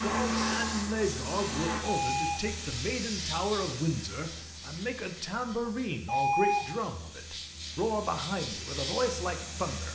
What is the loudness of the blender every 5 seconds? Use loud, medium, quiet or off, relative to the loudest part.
loud, off.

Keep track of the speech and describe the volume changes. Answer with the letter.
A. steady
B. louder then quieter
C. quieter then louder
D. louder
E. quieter
A.